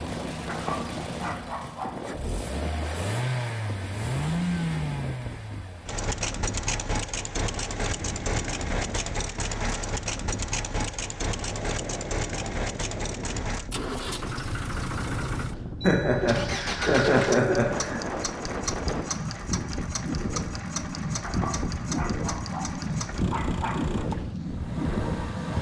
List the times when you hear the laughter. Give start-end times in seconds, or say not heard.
15.8-18.0.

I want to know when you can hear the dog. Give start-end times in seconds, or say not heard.
0.5-2.0, 21.2-24.1.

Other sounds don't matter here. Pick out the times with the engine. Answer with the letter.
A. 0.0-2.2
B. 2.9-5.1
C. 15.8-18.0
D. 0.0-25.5
D.